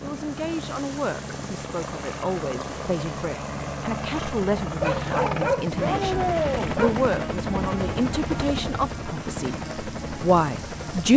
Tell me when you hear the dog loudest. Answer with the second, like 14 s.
5 s.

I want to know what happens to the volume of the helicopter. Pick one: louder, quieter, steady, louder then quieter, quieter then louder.
louder then quieter.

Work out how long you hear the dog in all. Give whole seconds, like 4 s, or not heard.
3 s.